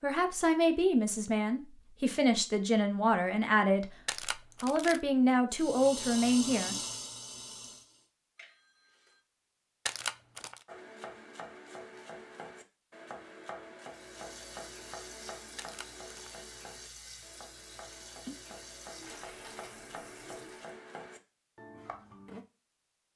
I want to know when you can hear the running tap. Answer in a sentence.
You can hear the running tap from 5.5 to 8.1 s and from 13.8 to 20.8 s.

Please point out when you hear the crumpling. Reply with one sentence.
You can hear the crumpling from 4.0 to 5.0 s, from 9.8 to 10.7 s and from 15.6 to 16.4 s.